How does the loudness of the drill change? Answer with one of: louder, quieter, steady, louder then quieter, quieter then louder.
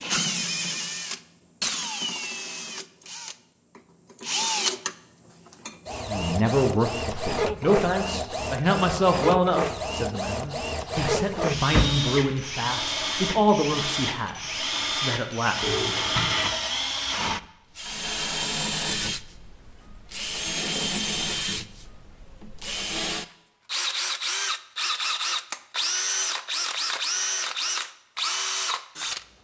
steady.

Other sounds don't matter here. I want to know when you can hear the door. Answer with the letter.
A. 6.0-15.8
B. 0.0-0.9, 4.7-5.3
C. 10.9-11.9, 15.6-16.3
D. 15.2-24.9
C.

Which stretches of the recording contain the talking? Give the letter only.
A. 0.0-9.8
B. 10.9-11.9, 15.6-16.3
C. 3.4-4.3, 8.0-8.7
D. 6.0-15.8
D.